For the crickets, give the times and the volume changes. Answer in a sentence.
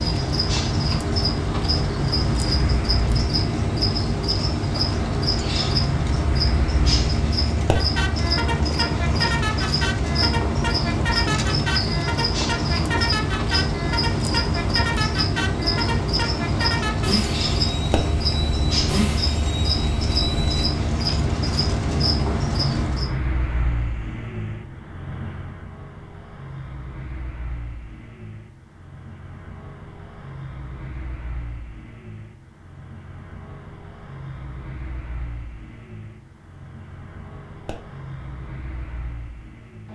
You can hear the crickets from 0.0 to 23.1 s, at a steady volume.